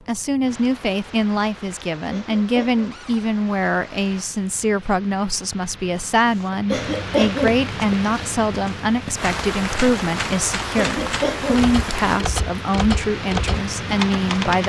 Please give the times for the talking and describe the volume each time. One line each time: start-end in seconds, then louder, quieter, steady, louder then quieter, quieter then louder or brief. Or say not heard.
0.1-14.6 steady.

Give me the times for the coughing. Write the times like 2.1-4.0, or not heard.
2.1-2.9, 6.7-7.6, 10.8-11.7.